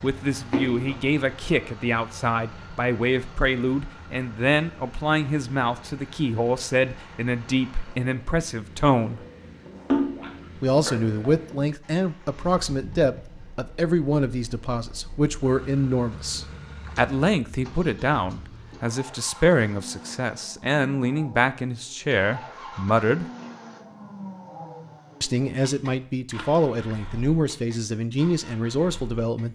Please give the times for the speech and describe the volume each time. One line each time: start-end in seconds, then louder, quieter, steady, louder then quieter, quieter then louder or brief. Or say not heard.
0.0-9.2 steady
10.6-23.2 steady
25.2-29.5 steady.